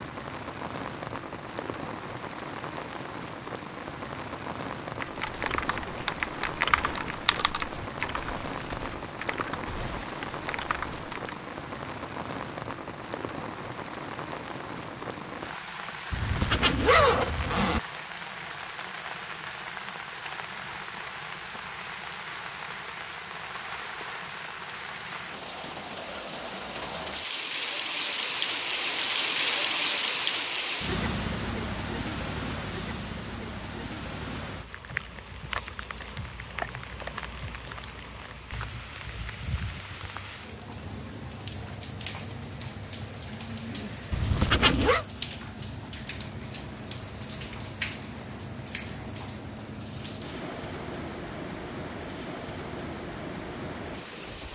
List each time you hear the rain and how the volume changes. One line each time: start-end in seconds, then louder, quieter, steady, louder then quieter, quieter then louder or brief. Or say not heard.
0.0-54.5 louder then quieter.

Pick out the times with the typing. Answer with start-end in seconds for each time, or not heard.
5.0-11.3.